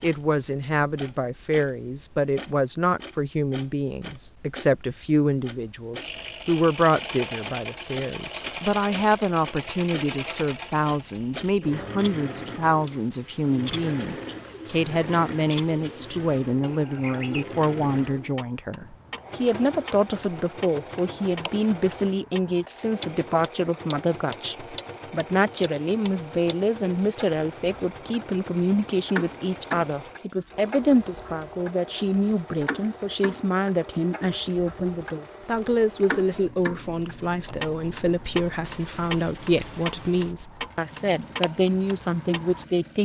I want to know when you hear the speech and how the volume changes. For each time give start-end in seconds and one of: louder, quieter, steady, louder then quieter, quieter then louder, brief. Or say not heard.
0.0-43.0 steady.